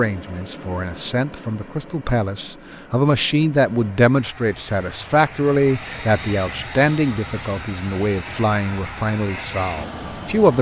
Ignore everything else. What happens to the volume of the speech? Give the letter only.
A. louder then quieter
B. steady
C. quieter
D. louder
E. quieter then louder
A.